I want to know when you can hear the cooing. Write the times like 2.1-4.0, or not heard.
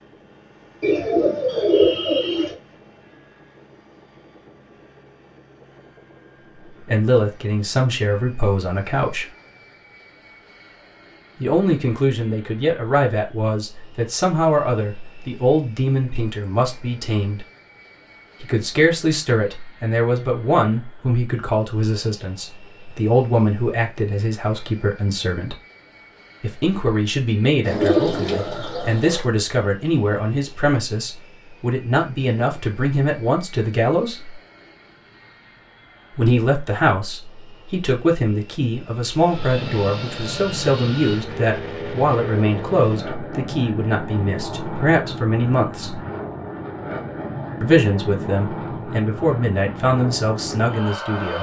0.8-2.5, 27.6-29.2.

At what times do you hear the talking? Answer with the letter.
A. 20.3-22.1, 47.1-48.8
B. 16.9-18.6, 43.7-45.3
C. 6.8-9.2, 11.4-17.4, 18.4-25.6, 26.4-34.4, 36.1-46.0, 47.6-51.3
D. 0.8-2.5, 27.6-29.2
C.